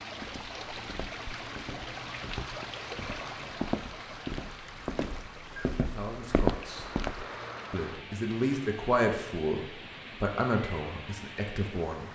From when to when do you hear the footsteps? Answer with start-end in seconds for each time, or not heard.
0.2-7.3.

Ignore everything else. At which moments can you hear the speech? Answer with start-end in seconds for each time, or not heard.
5.8-7.0, 7.7-12.0.